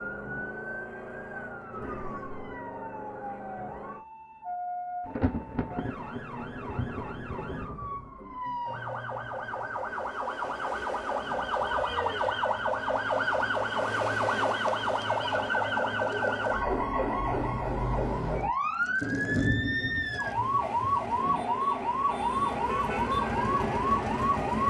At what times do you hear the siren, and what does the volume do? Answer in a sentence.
The siren can be heard from 0.0 to 24.6 s, getting louder.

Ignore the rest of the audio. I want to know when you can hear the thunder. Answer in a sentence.
You can hear the thunder from 5.0 to 8.0 s and from 19.0 to 21.4 s.